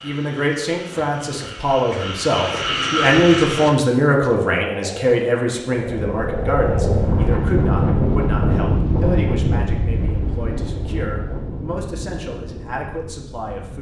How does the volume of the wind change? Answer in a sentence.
The loudness of the wind goes down.